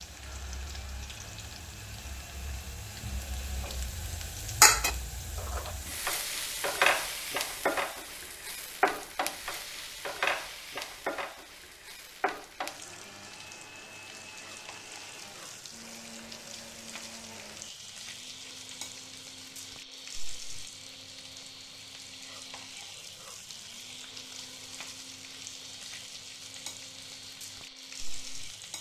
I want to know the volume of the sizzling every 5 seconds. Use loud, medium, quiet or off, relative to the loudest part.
loud, loud, medium, quiet, quiet, quiet.